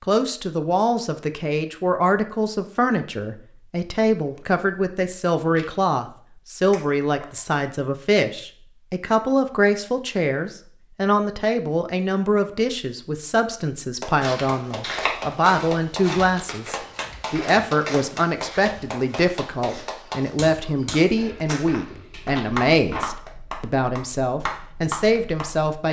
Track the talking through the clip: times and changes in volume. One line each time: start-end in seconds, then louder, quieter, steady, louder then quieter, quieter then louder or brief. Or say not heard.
0.0-25.8 steady.